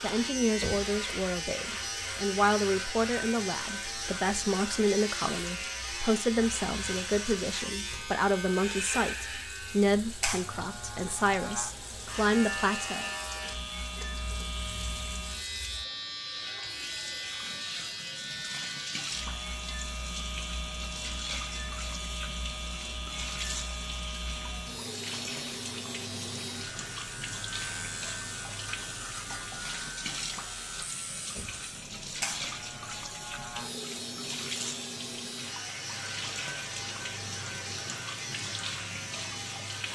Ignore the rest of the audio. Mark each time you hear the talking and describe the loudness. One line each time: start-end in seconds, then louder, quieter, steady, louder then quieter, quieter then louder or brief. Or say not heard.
0.0-13.1 steady.